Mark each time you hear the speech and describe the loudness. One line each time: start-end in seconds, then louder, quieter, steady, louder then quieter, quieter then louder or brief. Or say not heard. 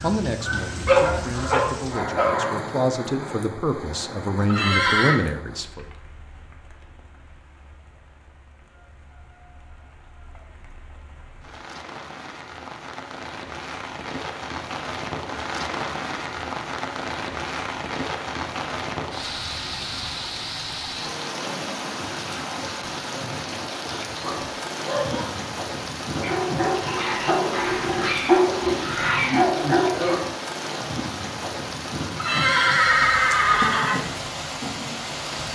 0.0-5.8 louder.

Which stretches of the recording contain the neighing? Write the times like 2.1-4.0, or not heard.
4.5-5.2, 32.1-34.0.